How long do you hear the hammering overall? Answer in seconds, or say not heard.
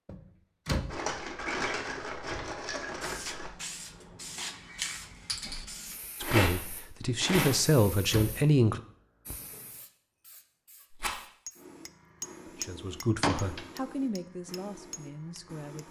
4 s.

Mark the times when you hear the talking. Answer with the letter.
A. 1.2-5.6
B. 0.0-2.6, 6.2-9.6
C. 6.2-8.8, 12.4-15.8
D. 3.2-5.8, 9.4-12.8
C.